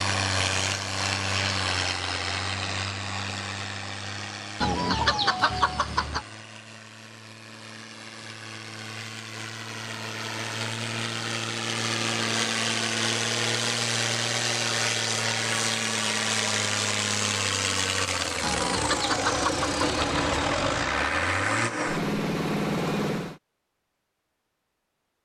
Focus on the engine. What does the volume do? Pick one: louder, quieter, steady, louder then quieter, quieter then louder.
quieter then louder.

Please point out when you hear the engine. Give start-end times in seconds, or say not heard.
0.0-23.4.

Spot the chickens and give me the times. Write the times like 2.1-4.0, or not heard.
4.6-6.2, 18.4-20.4.